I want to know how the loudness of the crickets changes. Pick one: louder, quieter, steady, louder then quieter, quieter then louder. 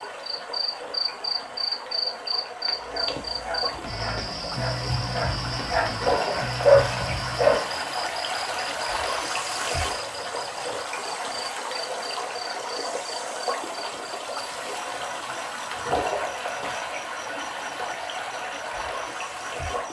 quieter.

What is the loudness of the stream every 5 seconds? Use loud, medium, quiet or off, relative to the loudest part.
medium, loud, loud, loud.